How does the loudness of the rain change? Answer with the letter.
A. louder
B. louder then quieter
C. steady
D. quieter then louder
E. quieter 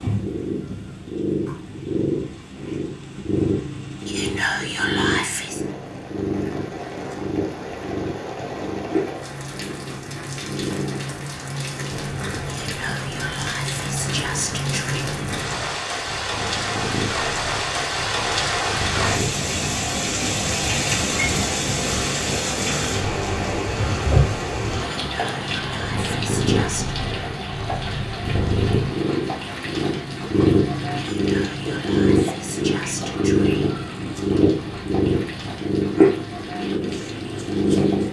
B.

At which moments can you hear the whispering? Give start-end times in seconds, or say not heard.
4.0-5.7, 12.4-15.1, 24.9-26.9, 30.9-33.8.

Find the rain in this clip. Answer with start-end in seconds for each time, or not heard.
0.0-38.0.